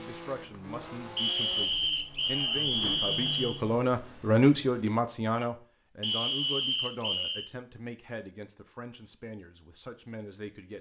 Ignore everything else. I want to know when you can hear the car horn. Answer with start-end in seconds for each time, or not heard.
not heard.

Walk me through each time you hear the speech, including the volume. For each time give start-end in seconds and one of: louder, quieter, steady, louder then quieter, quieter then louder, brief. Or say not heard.
0.0-10.7 louder then quieter.